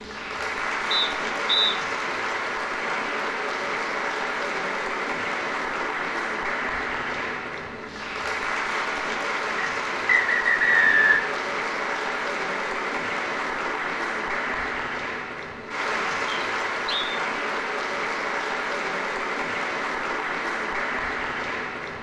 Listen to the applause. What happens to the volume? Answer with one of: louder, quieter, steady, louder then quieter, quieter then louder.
steady.